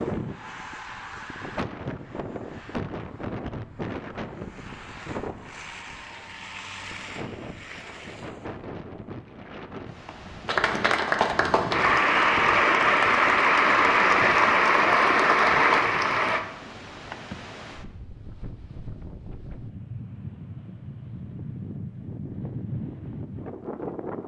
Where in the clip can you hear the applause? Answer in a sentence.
The applause can be heard from 10.4 to 16.4 s.